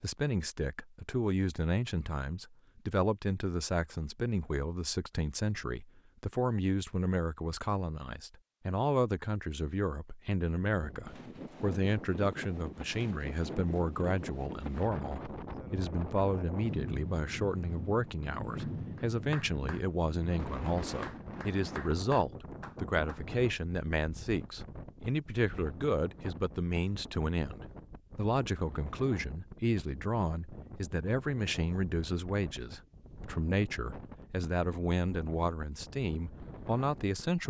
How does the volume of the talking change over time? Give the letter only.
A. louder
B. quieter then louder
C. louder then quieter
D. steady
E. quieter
D.